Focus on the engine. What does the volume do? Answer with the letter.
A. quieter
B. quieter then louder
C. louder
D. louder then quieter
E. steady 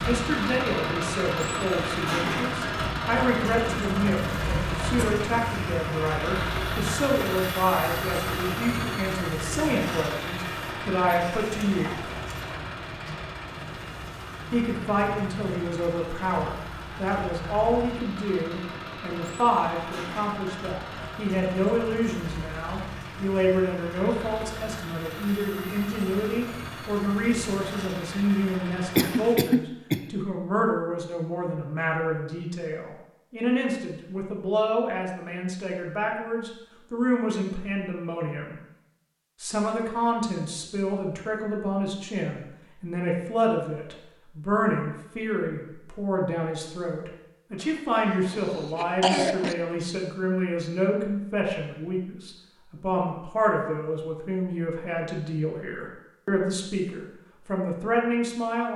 A.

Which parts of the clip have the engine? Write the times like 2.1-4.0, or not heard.
0.0-29.4.